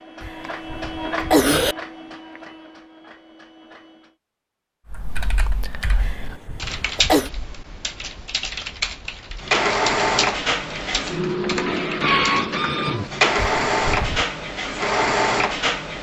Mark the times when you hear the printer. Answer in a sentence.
The printer can be heard from 0.0 to 4.2 s and from 9.4 to 15.9 s.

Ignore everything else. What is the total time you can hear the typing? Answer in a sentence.
The typing can be heard for 8 seconds in total.